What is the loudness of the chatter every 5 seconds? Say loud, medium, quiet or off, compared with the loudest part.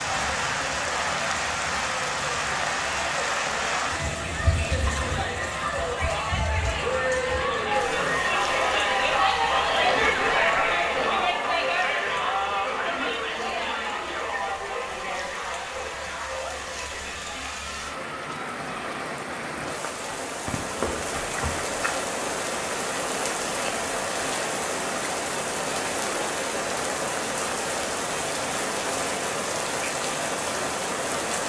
medium, loud, loud, medium, off, off, off.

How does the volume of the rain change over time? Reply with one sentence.
The volume of the rain goes down, then up.